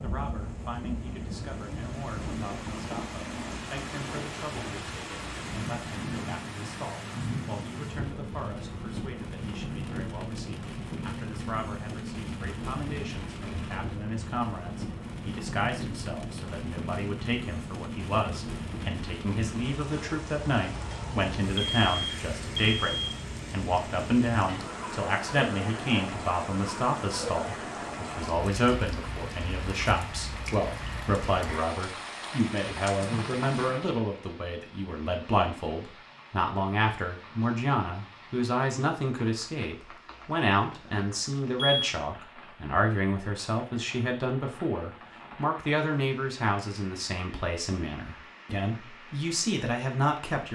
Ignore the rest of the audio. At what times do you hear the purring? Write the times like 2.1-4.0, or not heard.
not heard.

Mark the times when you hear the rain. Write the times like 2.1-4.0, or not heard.
0.0-50.5.